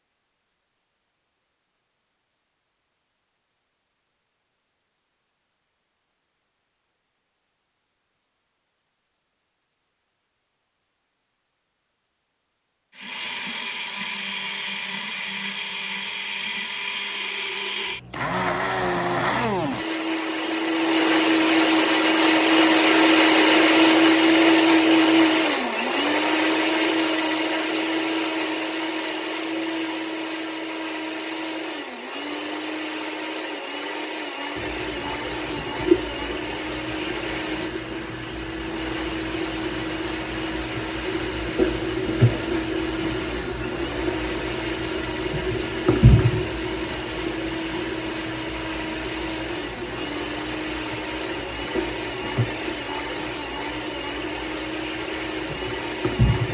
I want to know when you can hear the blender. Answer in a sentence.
You can hear the blender from 12.9 to 56.5 s.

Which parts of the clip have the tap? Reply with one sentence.
You can hear the tap from 34.5 to 56.5 s.